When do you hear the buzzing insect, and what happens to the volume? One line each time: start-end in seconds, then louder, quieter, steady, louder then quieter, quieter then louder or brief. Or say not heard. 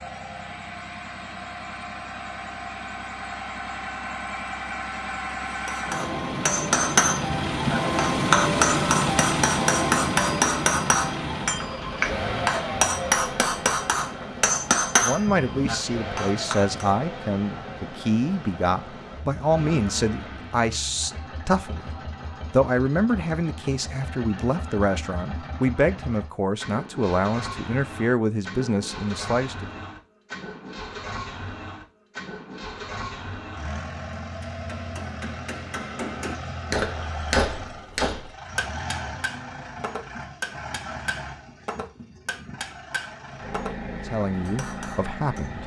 not heard.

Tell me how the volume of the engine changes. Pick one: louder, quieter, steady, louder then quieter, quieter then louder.
quieter.